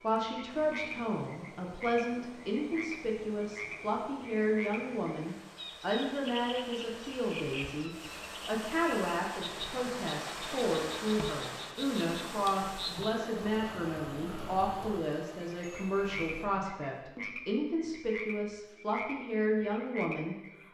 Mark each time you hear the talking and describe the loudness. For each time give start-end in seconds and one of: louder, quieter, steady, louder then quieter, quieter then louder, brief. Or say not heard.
0.0-20.4 steady.